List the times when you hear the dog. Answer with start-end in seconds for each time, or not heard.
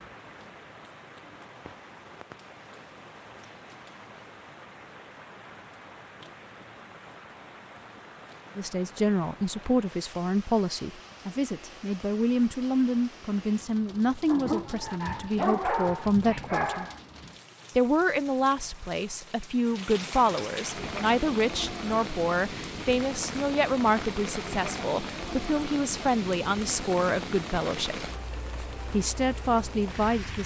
14.2-17.0.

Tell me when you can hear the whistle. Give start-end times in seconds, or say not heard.
not heard.